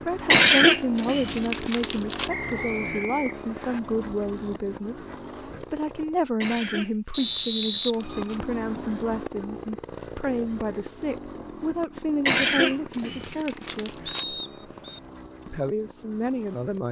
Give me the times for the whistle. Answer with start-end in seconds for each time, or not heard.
2.2-3.8, 7.1-8.4, 14.1-15.0.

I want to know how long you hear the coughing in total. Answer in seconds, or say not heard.
6 s.